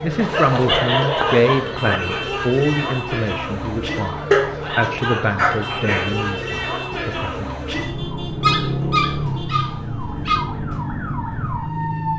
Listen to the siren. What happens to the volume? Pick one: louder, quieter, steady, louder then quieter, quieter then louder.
steady.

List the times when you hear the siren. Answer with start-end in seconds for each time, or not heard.
0.0-12.1.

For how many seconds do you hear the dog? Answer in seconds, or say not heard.
6 s.